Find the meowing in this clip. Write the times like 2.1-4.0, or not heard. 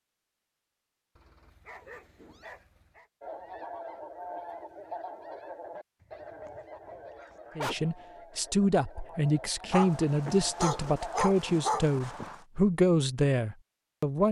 1.6-2.5.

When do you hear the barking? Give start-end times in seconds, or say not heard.
1.1-3.1, 6.0-7.8, 9.7-12.4.